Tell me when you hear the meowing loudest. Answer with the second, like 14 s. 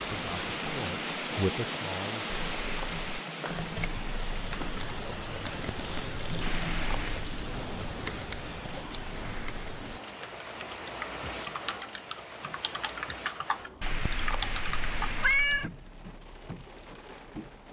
15 s.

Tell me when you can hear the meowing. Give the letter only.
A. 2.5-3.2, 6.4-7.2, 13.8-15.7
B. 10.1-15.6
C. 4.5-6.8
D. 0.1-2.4
A.